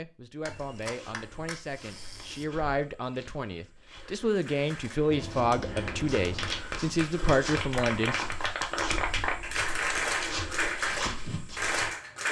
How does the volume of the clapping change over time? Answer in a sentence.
The loudness of the clapping goes up.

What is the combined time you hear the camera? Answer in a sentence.
The camera can be heard for 5 seconds in total.